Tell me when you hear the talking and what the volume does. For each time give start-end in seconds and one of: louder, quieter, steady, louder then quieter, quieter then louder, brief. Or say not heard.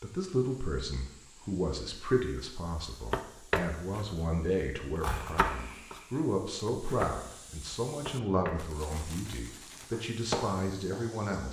0.0-11.4 steady.